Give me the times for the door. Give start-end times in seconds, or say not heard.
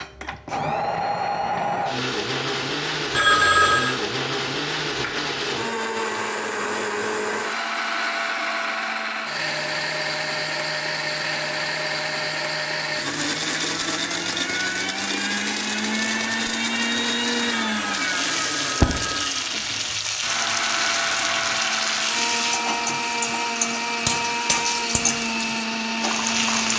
not heard.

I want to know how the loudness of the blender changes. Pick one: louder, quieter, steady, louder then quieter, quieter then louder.
steady.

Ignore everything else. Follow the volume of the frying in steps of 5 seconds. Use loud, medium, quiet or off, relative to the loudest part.
off, off, off, loud, loud, loud.